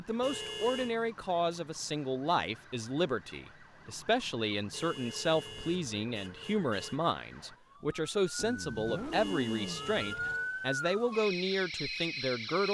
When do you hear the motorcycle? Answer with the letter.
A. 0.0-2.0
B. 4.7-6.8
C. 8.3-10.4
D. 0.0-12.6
C.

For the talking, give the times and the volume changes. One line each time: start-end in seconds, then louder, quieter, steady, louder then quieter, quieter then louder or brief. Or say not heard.
0.0-12.6 steady.